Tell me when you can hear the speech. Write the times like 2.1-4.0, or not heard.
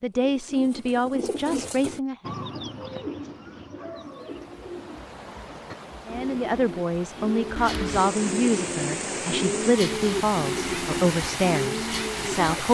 0.0-2.4, 6.0-12.6.